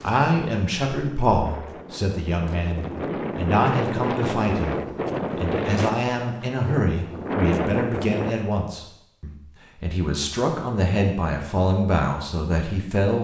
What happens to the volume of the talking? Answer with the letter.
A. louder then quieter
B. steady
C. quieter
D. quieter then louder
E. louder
B.